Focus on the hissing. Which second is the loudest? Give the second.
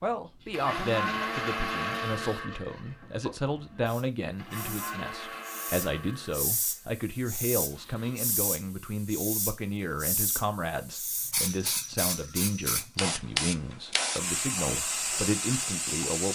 14 s.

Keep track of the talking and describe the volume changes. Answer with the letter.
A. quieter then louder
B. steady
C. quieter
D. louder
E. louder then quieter
B.